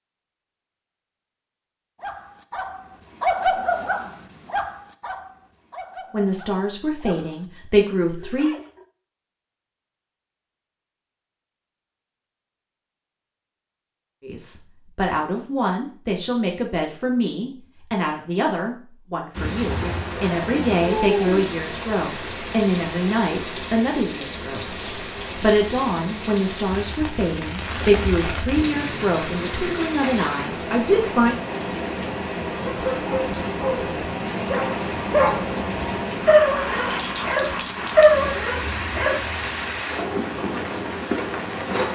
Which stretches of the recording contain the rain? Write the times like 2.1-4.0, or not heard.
19.4-41.9.